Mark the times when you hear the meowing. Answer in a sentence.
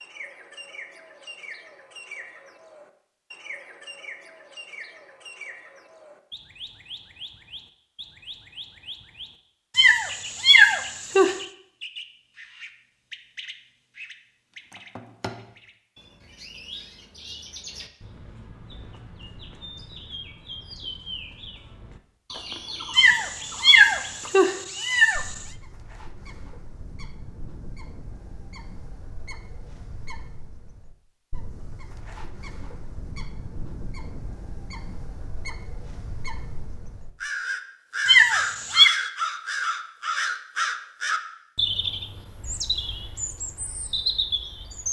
The meowing can be heard from 9.8 to 11.3 s, from 22.9 to 25.3 s and from 38.0 to 38.9 s.